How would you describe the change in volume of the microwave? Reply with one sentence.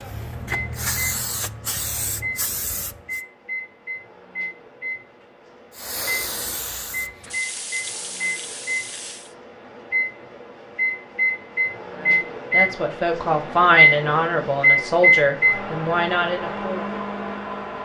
The loudness of the microwave goes up.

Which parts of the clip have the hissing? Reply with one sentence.
The hissing can be heard from 0.0 to 3.2 s and from 5.7 to 9.3 s.